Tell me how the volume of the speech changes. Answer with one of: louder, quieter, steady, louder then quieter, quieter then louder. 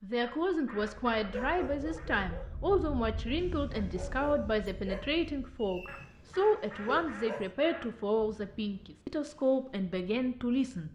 steady.